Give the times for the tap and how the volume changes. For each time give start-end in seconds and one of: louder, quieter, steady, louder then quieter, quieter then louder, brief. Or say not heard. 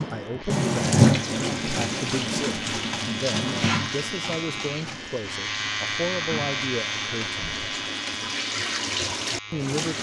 0.0-9.9 quieter then louder.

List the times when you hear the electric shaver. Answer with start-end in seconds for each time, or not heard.
0.0-9.8.